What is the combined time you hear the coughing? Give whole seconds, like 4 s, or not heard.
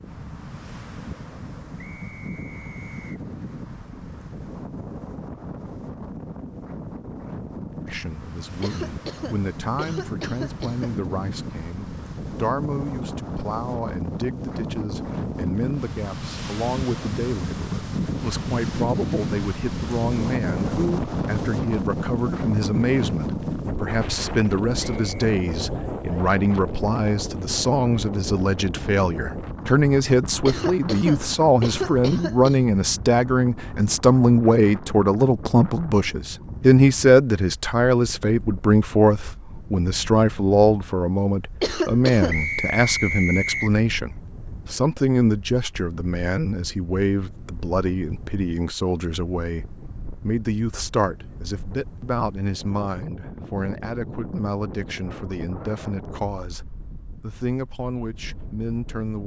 5 s.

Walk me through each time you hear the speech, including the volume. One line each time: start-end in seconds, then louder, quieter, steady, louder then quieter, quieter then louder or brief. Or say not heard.
7.8-59.2 louder then quieter.